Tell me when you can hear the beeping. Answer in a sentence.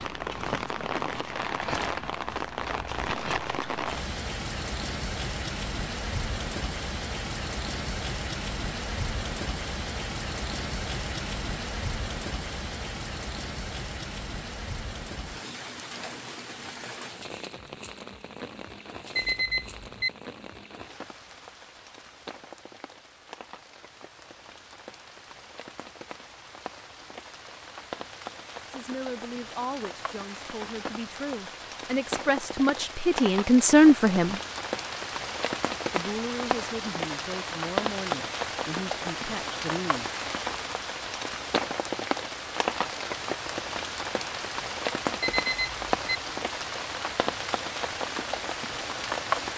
You can hear the beeping from 19.1 to 20.1 s and from 45.2 to 46.2 s.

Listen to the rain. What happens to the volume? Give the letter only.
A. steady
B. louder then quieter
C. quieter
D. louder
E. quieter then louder
E.